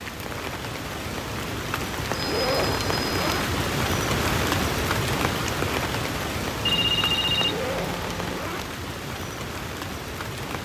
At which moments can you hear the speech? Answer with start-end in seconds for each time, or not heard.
not heard.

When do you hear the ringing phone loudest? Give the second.
7 s.